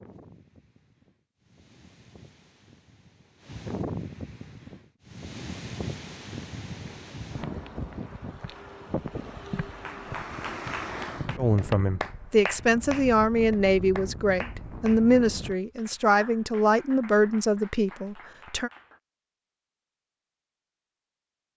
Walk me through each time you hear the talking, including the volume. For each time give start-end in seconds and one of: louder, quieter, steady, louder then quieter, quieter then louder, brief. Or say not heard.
11.3-18.7 steady.